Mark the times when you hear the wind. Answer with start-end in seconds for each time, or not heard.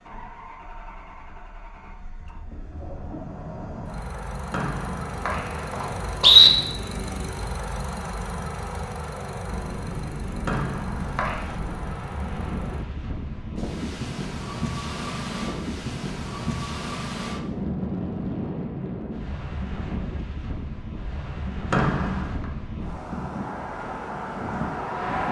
9.4-25.2.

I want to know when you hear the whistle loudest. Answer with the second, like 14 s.
6 s.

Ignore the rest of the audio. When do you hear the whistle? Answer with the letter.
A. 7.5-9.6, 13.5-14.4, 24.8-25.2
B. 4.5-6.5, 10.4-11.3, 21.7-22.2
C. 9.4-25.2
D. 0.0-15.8
B.